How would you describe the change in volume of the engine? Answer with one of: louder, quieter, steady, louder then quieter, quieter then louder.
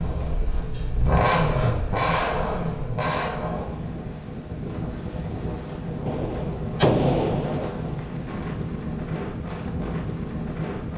louder then quieter.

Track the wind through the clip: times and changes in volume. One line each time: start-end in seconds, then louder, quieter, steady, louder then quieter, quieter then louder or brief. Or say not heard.
0.0-10.9 louder.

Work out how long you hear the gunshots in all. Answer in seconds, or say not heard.
2 s.